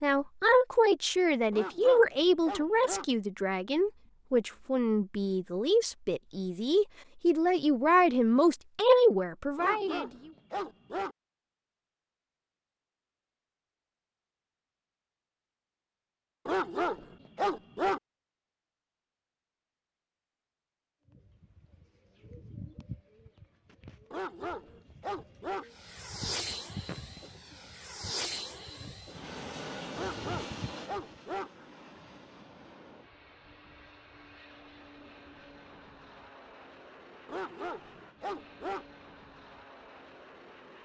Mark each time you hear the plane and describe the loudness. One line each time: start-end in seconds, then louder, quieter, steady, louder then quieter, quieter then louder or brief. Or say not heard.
25.7-40.7 quieter.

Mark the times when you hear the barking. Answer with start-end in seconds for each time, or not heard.
1.5-3.0, 9.6-11.2, 16.4-18.0, 24.1-25.6, 29.9-31.5, 37.2-38.9.